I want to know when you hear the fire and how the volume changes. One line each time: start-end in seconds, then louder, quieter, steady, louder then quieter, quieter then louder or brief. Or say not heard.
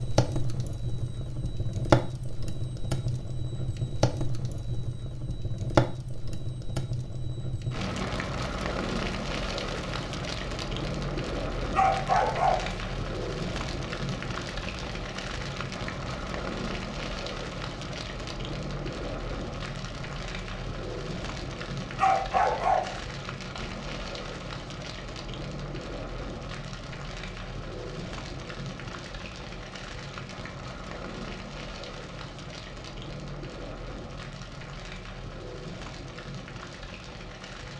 0.0-37.7 quieter.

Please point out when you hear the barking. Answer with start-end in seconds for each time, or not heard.
11.7-12.8, 21.9-23.0.